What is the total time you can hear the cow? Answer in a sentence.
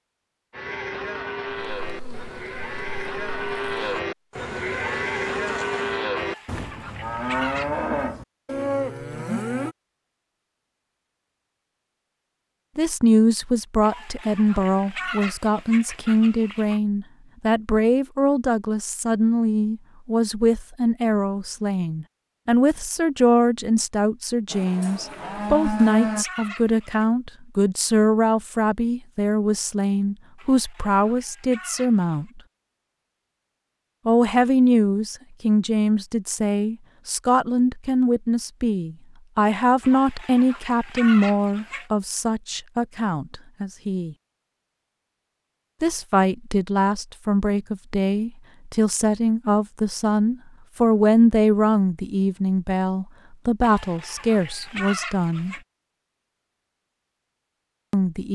You can hear the cow for 11 seconds altogether.